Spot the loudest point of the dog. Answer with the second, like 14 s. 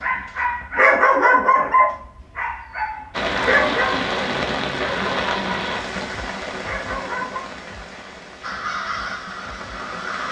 1 s.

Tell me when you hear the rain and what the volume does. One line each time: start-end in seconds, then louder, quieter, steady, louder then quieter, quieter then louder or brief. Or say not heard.
3.1-10.2 quieter.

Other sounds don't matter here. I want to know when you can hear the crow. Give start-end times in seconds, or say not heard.
8.4-10.2.